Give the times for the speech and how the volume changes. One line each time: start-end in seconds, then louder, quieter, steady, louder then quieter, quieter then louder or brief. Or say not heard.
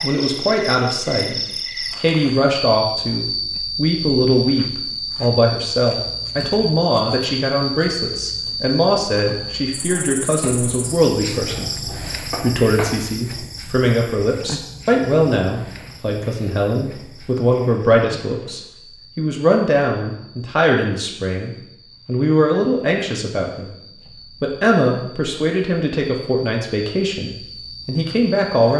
0.0-28.7 steady.